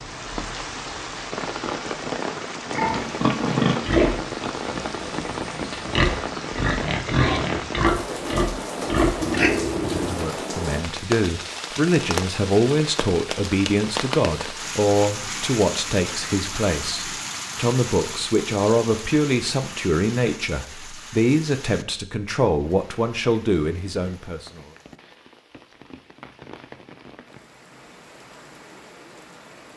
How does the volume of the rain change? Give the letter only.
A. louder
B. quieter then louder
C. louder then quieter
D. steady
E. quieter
E.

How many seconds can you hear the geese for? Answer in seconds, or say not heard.
not heard.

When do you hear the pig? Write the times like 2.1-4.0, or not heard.
2.6-10.3.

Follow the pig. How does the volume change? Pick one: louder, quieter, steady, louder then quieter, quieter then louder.
quieter then louder.